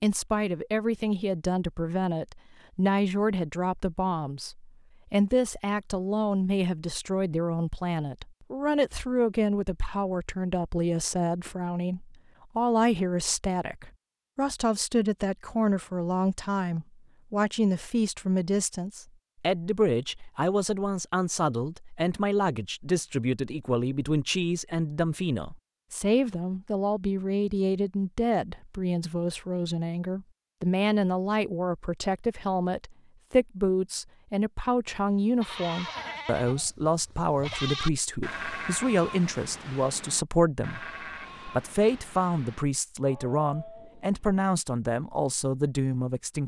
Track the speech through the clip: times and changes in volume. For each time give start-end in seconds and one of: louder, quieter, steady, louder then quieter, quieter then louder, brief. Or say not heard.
0.0-46.4 steady.